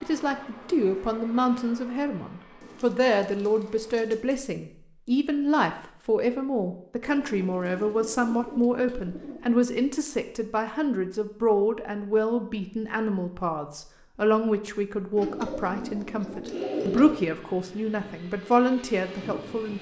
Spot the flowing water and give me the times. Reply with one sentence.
The flowing water can't be heard in this clip.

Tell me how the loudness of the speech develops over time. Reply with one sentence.
The volume of the speech stays about the same.